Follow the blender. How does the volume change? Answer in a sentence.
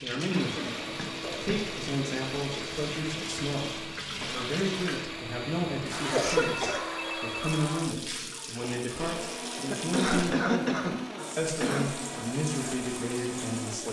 The loudness of the blender stays about the same.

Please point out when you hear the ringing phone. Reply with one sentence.
You can hear the ringing phone from 5.9 to 8.0 s.